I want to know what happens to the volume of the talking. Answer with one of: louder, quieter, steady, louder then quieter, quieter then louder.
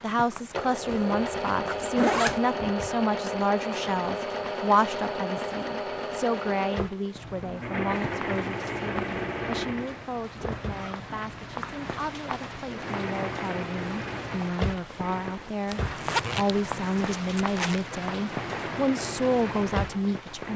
quieter then louder.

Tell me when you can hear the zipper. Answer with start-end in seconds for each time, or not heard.
0.8-2.4, 10.6-11.8, 15.7-17.9.